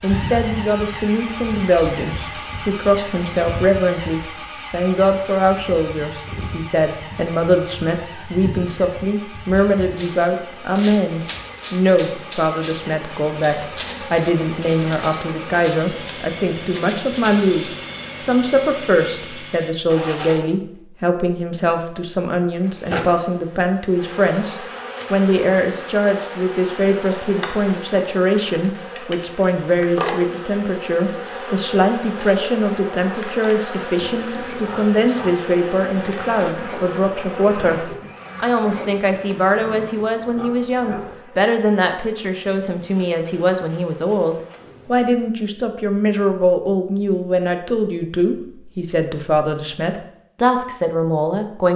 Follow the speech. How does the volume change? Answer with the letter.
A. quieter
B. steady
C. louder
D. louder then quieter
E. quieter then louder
B.